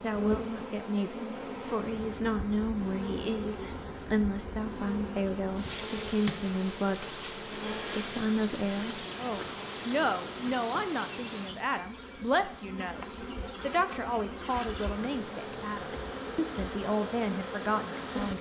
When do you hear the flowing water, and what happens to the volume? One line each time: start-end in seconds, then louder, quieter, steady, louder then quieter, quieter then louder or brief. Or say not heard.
not heard.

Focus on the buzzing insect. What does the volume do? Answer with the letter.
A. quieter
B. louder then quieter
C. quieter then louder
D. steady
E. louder
D.